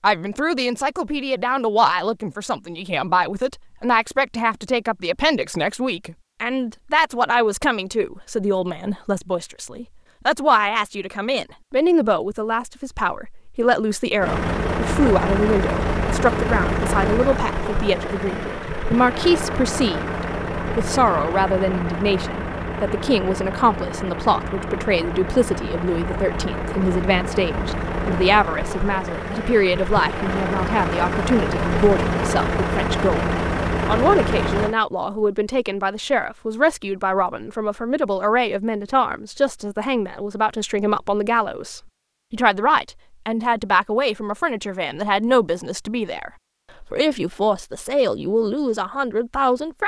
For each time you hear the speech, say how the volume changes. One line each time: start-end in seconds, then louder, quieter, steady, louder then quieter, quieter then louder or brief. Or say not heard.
0.0-49.8 steady.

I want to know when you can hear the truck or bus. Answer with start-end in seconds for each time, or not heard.
14.2-34.8.